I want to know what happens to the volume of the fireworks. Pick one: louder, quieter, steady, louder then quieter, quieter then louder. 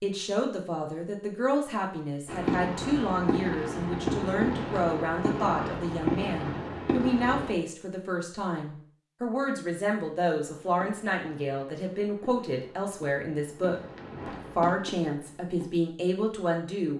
quieter then louder.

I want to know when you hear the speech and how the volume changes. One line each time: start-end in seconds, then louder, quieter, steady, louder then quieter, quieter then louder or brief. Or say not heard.
0.0-16.9 steady.